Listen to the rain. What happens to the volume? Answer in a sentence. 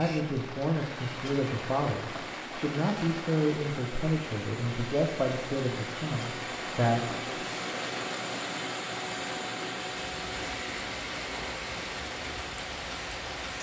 The loudness of the rain stays about the same.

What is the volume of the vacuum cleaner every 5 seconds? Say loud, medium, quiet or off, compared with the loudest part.
medium, loud, loud.